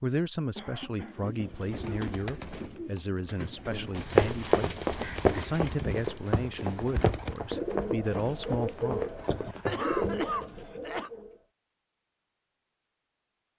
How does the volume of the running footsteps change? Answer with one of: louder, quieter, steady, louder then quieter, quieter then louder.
quieter.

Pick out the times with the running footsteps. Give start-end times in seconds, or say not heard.
4.0-10.2.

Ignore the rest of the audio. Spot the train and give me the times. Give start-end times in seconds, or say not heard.
not heard.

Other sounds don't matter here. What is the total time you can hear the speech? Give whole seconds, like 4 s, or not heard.
9 s.